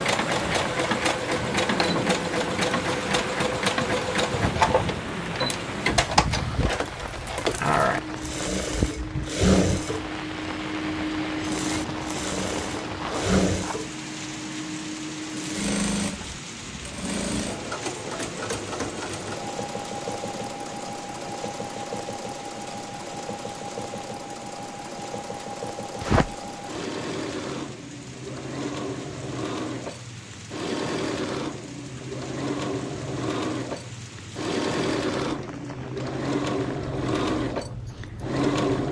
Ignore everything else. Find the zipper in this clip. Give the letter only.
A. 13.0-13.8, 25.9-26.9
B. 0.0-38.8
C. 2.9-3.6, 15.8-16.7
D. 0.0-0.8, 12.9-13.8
A.